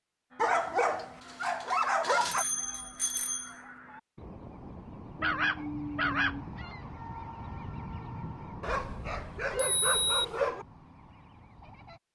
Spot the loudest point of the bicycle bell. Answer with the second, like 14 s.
10 s.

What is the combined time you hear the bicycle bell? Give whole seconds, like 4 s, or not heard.
3 s.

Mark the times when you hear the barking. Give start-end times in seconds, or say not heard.
0.3-2.5, 5.2-6.5, 8.6-10.7.